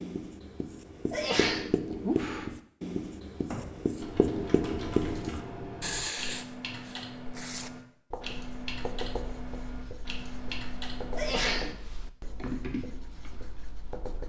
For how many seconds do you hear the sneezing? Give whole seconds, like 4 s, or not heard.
2 s.